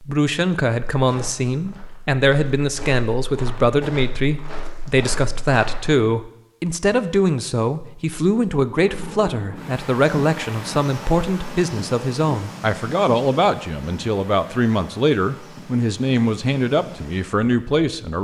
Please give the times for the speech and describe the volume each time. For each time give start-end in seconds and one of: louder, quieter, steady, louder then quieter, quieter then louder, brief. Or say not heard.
0.0-18.1 steady.